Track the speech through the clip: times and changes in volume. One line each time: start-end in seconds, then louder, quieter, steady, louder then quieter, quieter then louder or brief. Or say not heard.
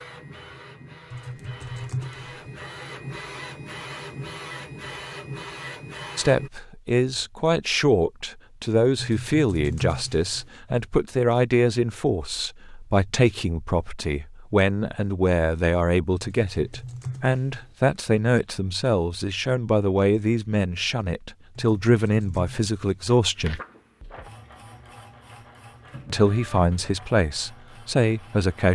6.2-23.6 steady
26.1-28.6 brief.